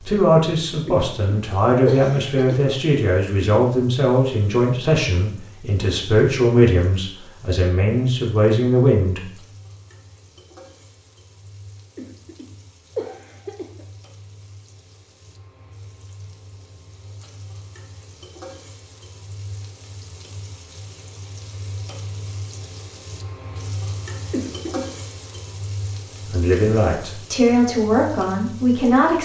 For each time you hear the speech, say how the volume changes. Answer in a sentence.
You can hear the speech from 0.1 to 9.2 s, at a steady volume; and briefly from 26.2 to 29.2 s.